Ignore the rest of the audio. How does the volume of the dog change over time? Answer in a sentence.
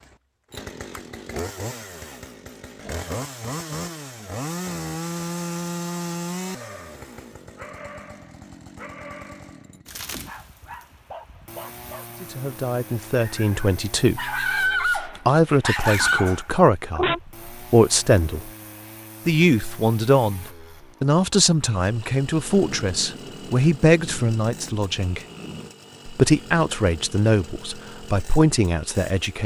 The loudness of the dog goes up.